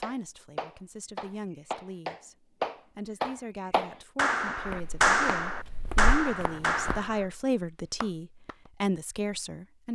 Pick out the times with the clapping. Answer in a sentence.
You can hear the clapping from 0.0 to 7.2 s and from 8.0 to 8.7 s.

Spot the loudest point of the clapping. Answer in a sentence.
The loudest moment of the clapping is at 5 seconds.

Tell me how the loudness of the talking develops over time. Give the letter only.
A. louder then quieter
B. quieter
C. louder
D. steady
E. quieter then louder
C.